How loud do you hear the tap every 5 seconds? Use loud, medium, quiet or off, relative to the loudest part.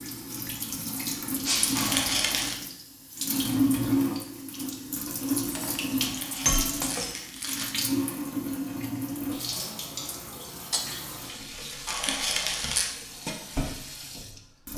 loud, loud, medium.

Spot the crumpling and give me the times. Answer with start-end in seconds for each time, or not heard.
1.8-2.6, 6.0-7.7, 11.8-12.9.